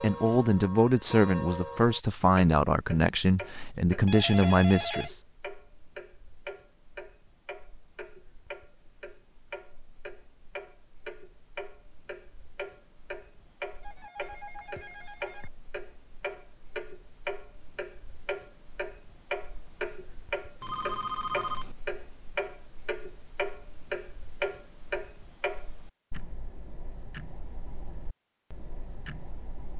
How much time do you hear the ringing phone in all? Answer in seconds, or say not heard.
4 s.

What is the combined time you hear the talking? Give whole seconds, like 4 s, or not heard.
5 s.